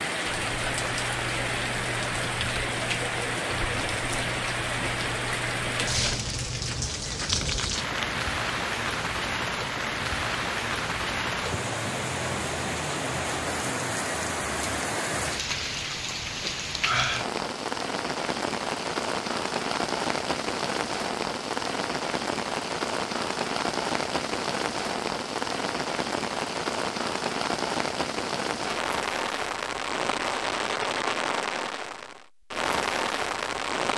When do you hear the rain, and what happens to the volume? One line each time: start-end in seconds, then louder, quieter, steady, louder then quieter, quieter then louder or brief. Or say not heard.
0.0-33.9 steady.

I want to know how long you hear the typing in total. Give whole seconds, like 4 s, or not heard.
8 s.